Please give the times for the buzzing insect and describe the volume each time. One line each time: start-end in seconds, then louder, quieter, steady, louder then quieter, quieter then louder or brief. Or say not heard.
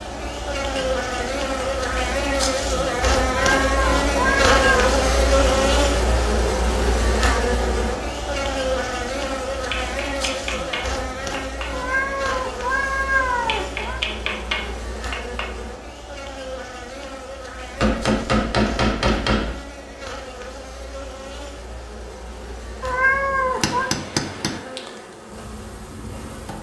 0.0-26.5 quieter.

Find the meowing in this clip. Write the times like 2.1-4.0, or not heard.
3.2-5.0, 11.7-14.0, 22.8-23.9.